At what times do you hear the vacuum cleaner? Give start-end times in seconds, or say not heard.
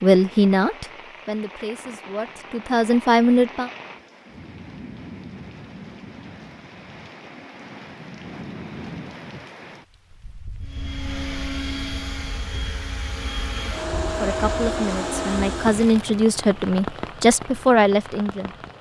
10.6-15.8.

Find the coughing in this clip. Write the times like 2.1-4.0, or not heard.
not heard.